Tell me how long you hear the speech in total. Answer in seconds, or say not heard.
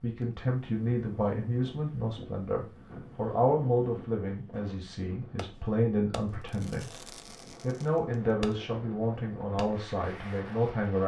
11 s.